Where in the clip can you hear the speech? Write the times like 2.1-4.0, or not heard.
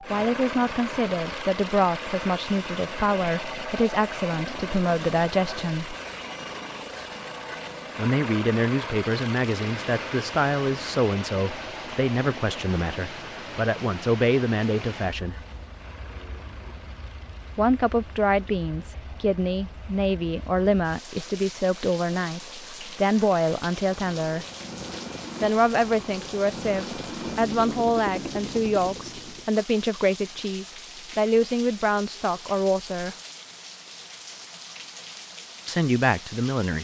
0.0-6.0, 8.0-15.3, 17.6-24.4, 25.4-33.1, 35.6-36.7.